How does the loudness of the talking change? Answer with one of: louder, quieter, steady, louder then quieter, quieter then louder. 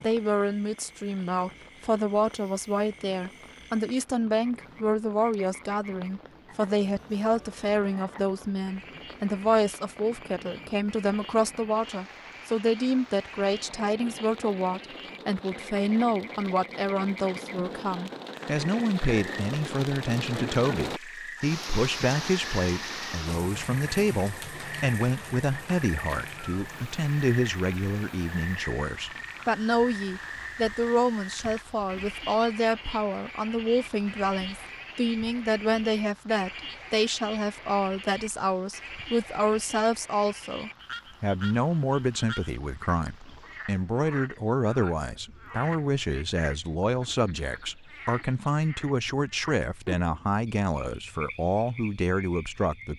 steady.